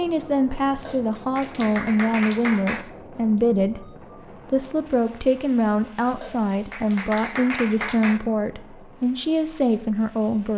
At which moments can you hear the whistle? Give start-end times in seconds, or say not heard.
not heard.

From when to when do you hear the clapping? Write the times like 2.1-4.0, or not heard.
0.8-2.9, 6.2-8.2.